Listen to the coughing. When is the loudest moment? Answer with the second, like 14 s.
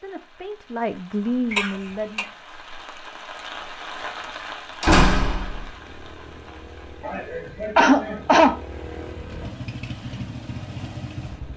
8 s.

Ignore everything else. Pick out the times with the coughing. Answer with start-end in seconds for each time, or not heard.
1.5-2.2, 7.0-8.6.